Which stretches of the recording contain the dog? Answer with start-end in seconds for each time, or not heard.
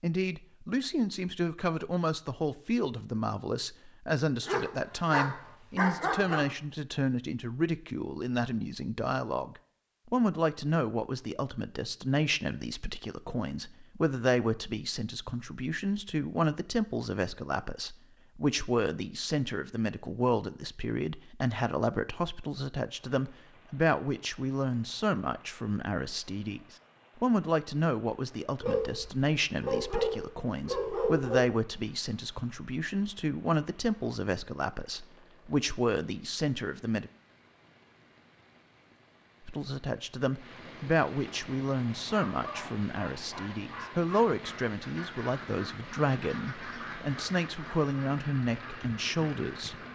4.4-6.5, 28.6-31.5, 42.0-44.1.